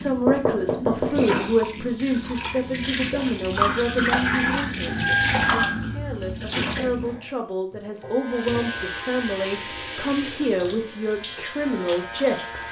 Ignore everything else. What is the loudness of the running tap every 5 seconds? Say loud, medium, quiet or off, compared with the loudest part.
loud, loud, medium.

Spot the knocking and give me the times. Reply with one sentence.
The knocking can be heard from 0.2 to 1.2 s.